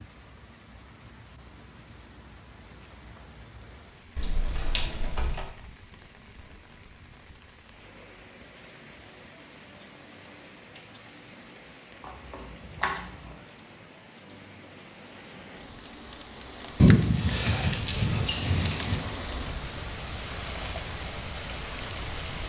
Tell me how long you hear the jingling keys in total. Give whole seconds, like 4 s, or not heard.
5 s.